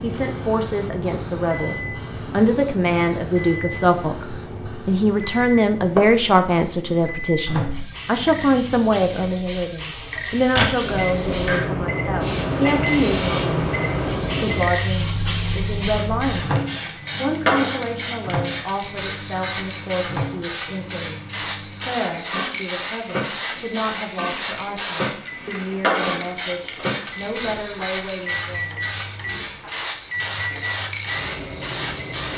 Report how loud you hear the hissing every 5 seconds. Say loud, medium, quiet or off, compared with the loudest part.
medium, medium, loud, loud, loud, loud, loud.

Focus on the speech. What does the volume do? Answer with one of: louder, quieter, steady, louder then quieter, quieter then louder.
quieter.